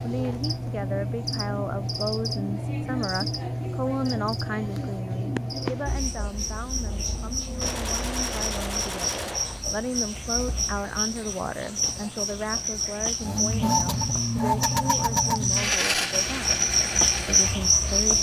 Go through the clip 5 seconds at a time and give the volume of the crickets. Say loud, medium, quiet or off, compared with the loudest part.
medium, medium, medium, loud.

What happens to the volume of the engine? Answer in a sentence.
The volume of the engine goes down.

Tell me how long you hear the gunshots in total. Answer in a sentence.
You can hear the gunshots for 2 seconds altogether.